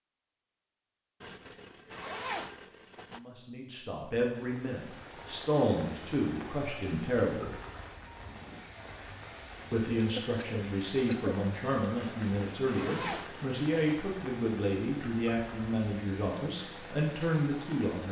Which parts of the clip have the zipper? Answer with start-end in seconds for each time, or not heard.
1.2-3.2, 11.9-13.9.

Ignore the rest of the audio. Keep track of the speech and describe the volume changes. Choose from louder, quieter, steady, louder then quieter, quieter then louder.
steady.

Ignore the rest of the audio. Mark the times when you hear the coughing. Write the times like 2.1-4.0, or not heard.
10.0-11.4.